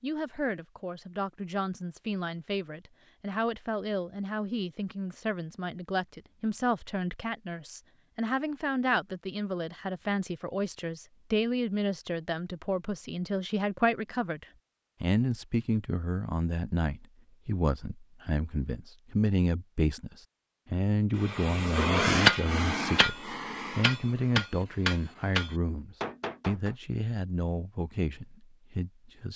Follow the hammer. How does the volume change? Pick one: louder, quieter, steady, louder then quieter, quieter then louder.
quieter.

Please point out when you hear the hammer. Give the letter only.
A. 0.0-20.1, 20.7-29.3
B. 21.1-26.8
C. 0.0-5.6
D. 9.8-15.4
B.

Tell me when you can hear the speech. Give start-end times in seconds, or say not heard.
0.0-20.1, 20.7-29.3.